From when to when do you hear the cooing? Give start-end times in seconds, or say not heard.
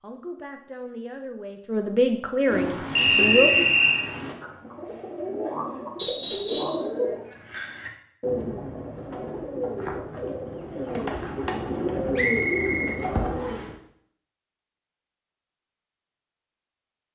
2.5-13.8.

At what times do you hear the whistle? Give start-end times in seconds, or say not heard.
3.0-4.0, 6.0-6.8, 12.2-13.7.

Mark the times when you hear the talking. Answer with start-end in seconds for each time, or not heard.
0.0-3.5.